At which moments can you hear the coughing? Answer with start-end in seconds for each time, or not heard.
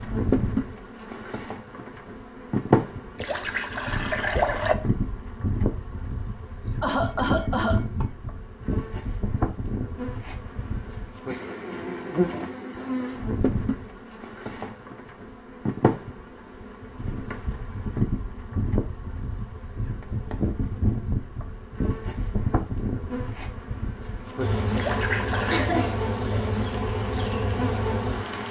6.6-8.1, 25.4-26.6.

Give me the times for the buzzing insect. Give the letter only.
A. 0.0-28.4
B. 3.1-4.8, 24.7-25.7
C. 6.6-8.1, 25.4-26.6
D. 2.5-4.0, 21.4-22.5
A.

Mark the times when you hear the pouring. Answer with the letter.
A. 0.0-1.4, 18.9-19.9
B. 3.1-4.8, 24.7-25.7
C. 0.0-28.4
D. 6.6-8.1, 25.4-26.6
B.